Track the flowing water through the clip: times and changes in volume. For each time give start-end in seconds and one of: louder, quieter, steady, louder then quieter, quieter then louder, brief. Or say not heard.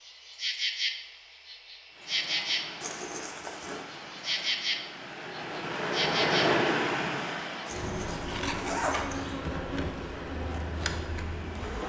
1.9-11.8 louder then quieter.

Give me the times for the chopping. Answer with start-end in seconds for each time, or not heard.
not heard.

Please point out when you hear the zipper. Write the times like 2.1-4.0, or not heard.
2.8-3.9, 7.7-9.3.